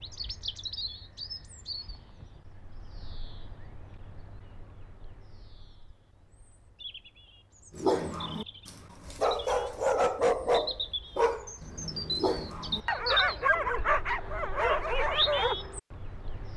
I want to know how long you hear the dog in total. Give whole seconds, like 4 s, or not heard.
8 s.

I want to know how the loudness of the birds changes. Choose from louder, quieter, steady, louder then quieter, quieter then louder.
quieter then louder.